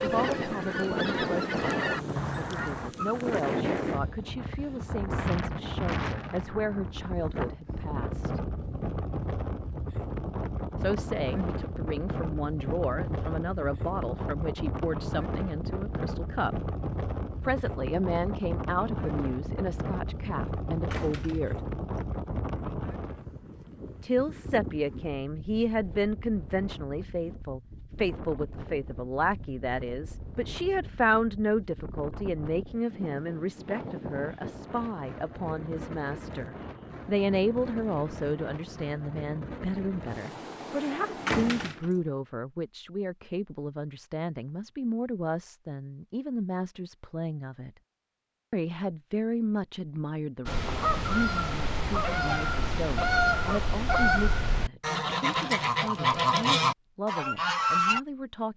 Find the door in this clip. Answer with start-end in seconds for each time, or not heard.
20.9-21.6, 41.2-42.0.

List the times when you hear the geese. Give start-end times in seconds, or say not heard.
0.0-2.9, 50.5-58.0.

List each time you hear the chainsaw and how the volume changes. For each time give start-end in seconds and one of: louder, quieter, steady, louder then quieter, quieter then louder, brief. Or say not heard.
not heard.